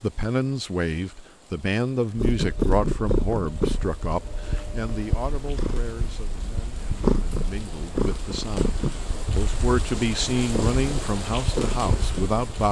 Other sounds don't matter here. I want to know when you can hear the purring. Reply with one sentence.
The purring can be heard from 2.1 to 12.6 s.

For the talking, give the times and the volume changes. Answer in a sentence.
The talking can be heard from 0.0 to 12.6 s, getting quieter then louder.